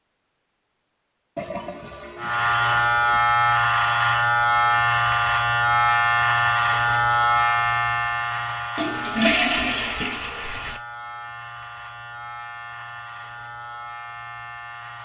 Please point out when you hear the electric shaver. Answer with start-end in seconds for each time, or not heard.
2.1-14.9.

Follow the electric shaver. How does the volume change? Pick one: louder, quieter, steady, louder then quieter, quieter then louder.
quieter.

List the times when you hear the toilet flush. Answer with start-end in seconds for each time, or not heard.
1.4-3.2, 8.8-10.8.